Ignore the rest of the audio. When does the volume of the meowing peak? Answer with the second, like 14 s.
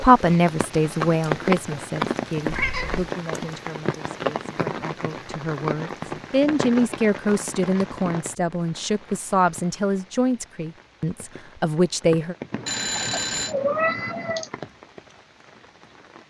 14 s.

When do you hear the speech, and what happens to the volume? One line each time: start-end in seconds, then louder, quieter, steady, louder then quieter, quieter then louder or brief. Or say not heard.
0.0-12.3 quieter then louder.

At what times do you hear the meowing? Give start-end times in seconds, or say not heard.
2.5-3.1, 12.5-14.5.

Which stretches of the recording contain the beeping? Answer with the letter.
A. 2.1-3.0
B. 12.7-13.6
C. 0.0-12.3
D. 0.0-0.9
B.